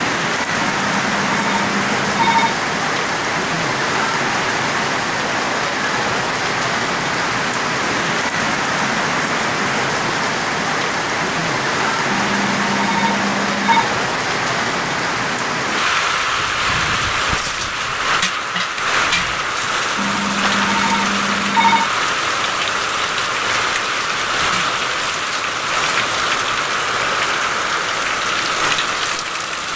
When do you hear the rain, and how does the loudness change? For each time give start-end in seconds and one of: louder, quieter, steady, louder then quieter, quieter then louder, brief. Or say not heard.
0.0-29.7 steady.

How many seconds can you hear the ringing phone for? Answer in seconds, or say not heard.
6 s.